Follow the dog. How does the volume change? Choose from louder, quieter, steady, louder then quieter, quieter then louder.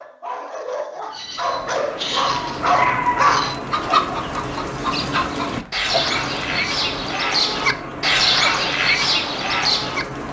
louder.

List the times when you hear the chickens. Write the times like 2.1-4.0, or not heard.
3.7-10.1.